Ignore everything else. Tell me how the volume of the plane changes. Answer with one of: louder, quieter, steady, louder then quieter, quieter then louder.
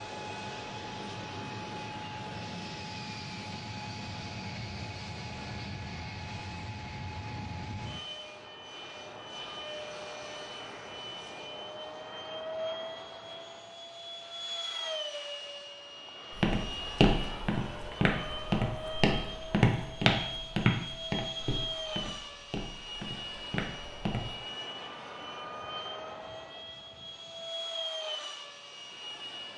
steady.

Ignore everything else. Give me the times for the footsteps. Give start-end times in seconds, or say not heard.
16.3-24.3.